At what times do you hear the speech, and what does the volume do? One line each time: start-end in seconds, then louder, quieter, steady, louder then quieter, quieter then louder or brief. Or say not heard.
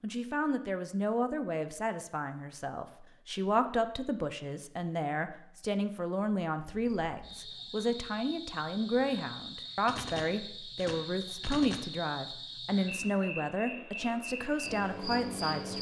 0.0-15.7 steady.